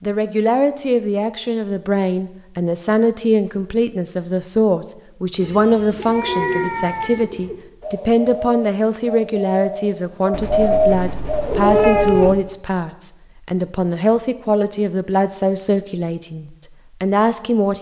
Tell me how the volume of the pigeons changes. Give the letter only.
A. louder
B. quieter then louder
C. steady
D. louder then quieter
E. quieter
B.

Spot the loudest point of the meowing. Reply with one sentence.
The volume of the meowing peaks at 12 seconds.